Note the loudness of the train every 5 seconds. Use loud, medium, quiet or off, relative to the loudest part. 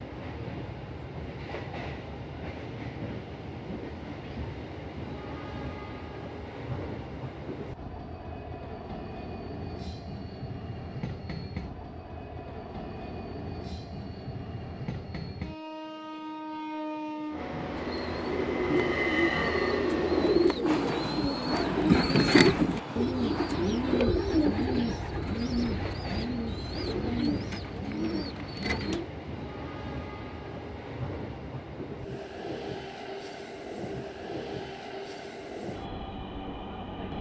medium, medium, medium, loud, loud, medium, medium, medium.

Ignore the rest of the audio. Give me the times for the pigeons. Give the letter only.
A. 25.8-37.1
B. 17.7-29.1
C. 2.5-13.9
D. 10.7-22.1
B.